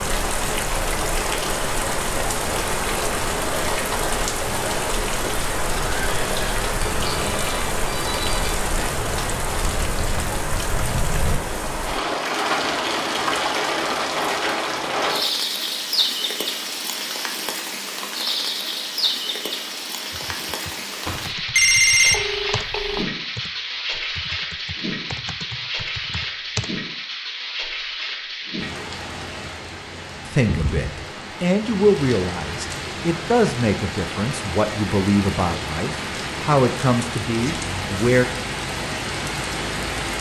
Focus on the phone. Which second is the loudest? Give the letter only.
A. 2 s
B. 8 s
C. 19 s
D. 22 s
D.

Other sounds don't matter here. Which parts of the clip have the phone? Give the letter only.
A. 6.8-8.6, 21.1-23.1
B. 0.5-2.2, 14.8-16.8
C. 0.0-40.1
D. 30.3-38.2
A.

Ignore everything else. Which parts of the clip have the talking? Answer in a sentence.
You can hear the talking from 30.3 to 38.2 s.